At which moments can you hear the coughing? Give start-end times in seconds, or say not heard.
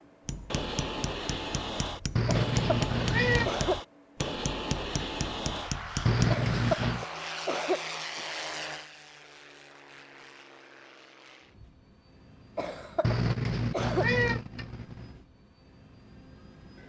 2.2-3.8, 6.3-8.2, 12.6-14.1.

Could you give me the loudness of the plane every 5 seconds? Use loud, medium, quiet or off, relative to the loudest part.
loud, loud, quiet, quiet.